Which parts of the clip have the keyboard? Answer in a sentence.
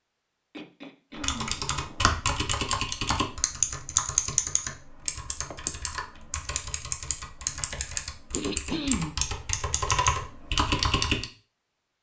The keyboard can be heard from 1.2 to 11.2 s.